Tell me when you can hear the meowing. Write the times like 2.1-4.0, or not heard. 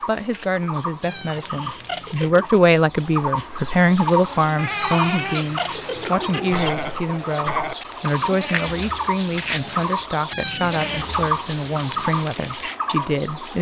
1.0-2.5, 4.7-6.7, 10.3-11.1.